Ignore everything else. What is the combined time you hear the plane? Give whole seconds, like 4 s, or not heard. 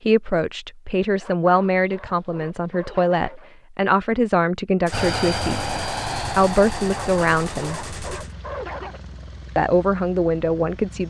6 s.